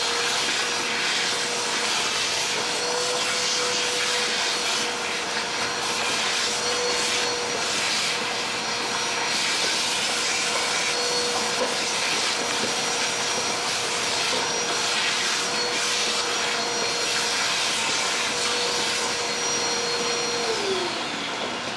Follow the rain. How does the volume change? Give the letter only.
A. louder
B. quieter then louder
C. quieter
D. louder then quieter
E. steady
E.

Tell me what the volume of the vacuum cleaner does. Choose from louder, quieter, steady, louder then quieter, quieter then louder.
steady.